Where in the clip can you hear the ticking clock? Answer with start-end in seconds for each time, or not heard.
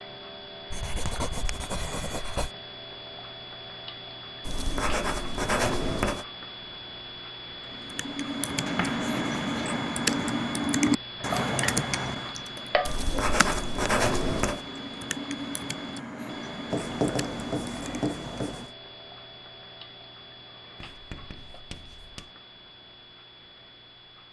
0.0-24.2.